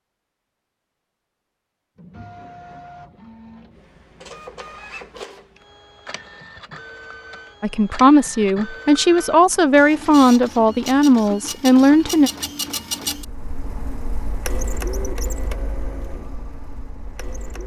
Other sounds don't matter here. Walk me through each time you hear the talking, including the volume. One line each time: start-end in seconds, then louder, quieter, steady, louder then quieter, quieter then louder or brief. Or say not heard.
7.6-12.3 steady.